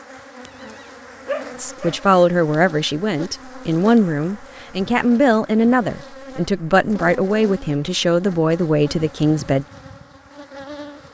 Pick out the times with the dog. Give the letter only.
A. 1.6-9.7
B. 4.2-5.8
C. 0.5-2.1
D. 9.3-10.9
C.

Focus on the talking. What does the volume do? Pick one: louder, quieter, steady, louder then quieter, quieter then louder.
steady.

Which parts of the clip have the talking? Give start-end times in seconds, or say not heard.
1.6-9.7.